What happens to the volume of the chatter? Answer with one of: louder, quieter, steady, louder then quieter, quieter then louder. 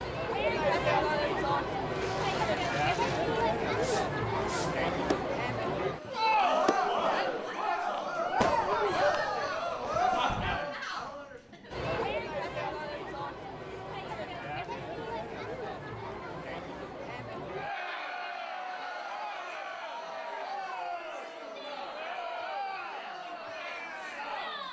quieter.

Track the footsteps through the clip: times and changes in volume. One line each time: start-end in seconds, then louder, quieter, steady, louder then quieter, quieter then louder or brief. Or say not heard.
not heard.